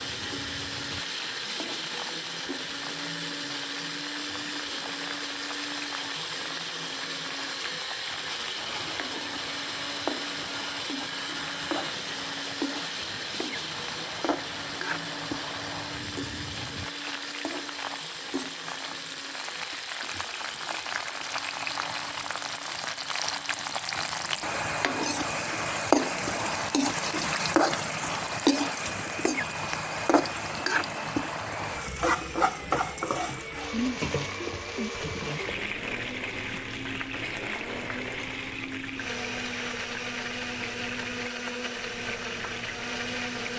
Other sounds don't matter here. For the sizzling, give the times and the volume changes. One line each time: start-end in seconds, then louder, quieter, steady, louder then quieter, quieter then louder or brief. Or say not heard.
0.0-43.5 louder then quieter.